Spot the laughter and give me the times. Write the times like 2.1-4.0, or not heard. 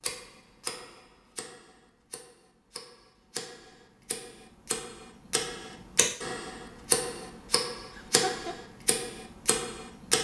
7.9-8.6.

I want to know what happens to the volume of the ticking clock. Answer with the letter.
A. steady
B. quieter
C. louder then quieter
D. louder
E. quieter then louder
D.